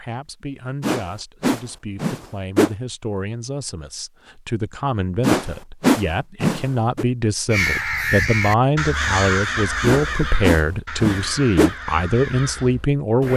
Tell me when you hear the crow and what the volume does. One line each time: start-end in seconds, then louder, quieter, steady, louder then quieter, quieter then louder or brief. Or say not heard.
7.5-13.3 quieter.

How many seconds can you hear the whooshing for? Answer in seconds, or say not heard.
6 s.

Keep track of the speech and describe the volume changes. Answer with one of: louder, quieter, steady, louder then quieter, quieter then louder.
louder.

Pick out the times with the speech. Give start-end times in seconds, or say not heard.
0.0-13.3.